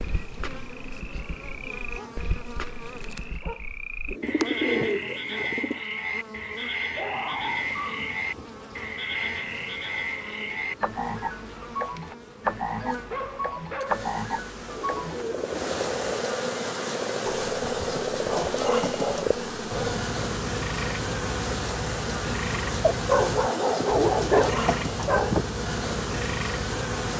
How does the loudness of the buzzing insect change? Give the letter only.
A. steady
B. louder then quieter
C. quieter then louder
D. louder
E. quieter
D.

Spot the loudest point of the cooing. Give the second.
5 s.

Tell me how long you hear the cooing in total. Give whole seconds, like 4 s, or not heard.
3 s.